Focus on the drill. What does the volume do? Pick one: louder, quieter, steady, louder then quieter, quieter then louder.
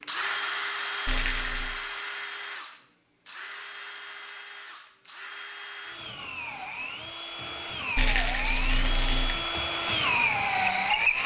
quieter then louder.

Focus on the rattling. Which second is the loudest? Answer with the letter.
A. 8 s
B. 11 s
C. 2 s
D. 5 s
A.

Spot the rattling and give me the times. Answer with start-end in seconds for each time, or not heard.
1.1-1.8, 8.0-9.3.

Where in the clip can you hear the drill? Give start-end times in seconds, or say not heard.
0.0-11.2.